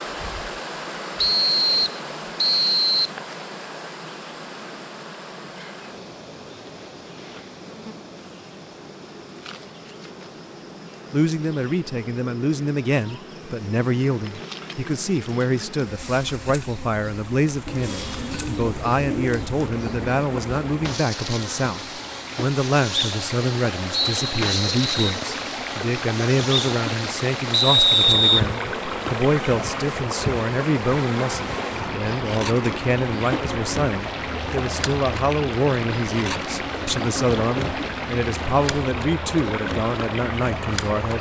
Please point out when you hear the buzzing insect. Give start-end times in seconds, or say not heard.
0.0-41.1.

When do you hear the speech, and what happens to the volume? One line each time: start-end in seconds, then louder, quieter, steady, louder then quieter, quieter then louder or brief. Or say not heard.
11.1-41.1 steady.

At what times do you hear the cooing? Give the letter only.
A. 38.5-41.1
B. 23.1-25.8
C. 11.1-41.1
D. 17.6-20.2
D.